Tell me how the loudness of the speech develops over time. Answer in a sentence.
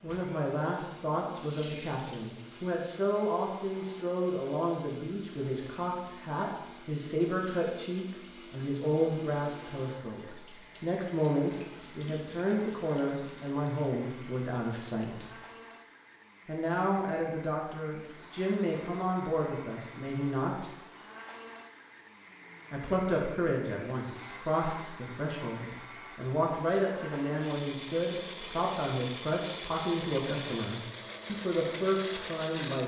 The loudness of the speech stays about the same.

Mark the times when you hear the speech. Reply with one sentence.
The speech can be heard from 0.0 to 15.3 s, from 16.4 to 20.7 s and from 22.7 to 32.8 s.